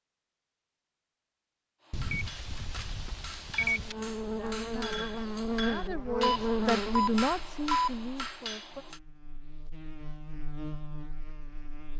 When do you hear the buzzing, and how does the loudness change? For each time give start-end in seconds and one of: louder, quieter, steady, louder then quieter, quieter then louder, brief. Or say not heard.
3.8-11.9 quieter then louder.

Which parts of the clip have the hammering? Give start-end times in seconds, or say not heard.
1.8-9.0.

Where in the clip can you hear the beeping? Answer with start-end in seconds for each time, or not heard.
1.9-4.0, 6.2-7.9.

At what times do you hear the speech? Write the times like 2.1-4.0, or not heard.
3.5-8.8.